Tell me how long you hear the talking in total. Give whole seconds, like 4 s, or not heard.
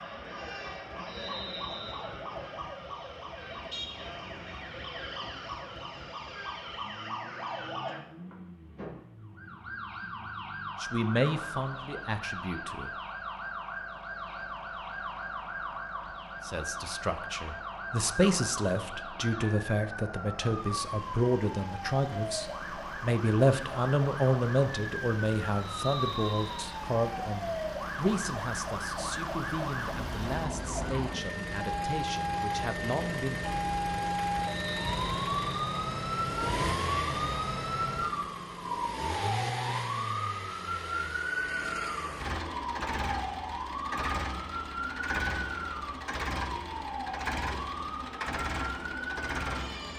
19 s.